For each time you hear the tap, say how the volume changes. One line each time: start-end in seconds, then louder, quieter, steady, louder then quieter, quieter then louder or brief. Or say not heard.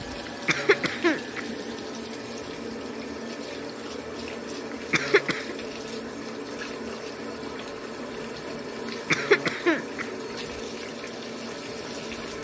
0.0-12.3 steady.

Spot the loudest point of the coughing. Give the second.
9 s.